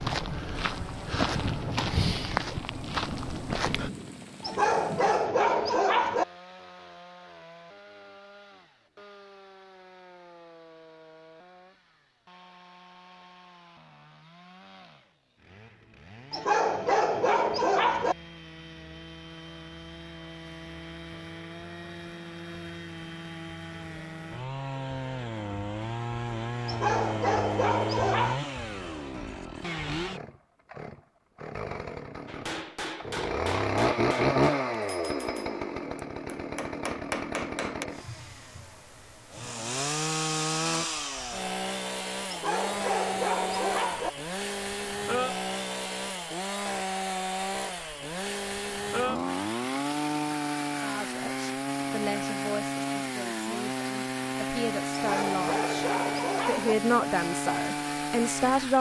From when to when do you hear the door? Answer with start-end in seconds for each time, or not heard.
not heard.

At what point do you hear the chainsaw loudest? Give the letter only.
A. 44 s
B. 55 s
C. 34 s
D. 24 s
C.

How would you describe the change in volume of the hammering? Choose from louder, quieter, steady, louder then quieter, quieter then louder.
quieter then louder.